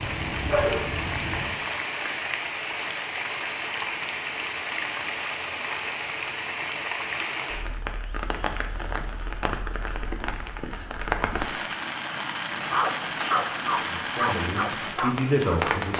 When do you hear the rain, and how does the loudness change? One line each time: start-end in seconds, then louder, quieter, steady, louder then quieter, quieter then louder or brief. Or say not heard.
0.0-15.9 steady.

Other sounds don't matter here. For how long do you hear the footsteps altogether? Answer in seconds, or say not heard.
not heard.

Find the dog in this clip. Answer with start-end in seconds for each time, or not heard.
0.0-1.6, 12.6-15.8.